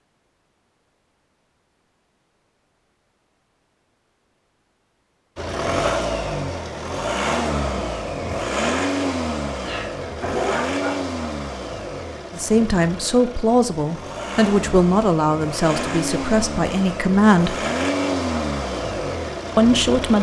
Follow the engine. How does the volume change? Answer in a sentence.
The loudness of the engine goes down, then up.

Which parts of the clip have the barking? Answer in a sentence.
The barking can be heard from 9.7 to 10.9 s.